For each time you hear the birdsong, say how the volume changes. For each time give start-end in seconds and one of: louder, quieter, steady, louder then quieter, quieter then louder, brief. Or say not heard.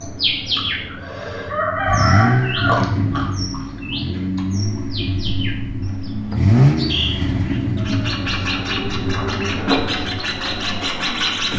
0.0-11.5 quieter then louder.